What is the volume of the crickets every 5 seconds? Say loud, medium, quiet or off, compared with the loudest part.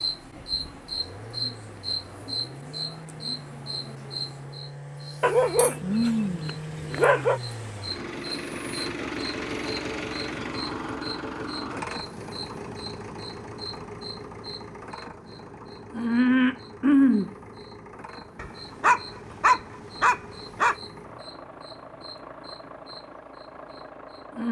medium, medium, quiet, loud, quiet.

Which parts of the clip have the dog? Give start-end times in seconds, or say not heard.
5.2-7.4, 18.4-20.8.